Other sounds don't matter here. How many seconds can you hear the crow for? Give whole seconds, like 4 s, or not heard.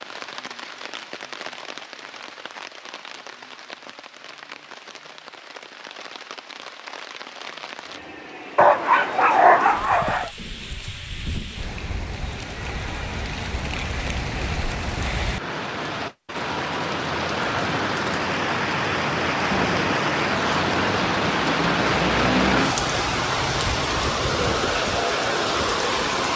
not heard.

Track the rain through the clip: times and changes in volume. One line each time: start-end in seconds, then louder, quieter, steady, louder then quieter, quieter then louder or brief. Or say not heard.
0.0-26.3 louder.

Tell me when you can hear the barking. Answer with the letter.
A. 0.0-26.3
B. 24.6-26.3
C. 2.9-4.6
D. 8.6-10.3
D.